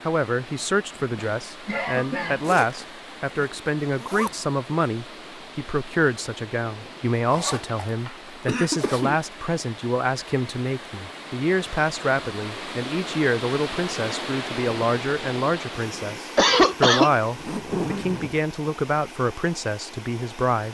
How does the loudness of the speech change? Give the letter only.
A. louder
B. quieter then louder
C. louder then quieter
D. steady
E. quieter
D.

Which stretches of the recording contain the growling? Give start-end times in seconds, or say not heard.
not heard.